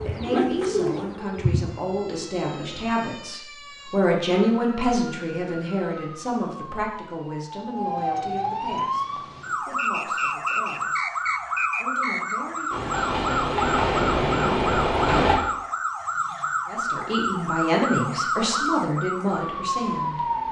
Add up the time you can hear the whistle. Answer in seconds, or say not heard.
3 s.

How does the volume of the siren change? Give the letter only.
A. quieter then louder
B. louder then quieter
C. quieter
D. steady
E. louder
E.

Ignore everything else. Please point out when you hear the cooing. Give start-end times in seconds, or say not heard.
0.0-2.9.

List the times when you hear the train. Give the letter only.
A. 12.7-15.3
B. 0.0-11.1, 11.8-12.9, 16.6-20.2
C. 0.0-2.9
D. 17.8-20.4
A.